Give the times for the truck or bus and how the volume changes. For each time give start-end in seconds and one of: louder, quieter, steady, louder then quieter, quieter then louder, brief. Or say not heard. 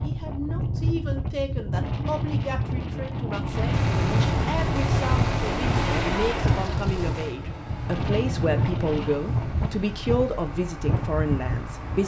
3.5-12.0 quieter.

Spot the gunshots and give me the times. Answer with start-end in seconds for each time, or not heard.
3.7-7.4.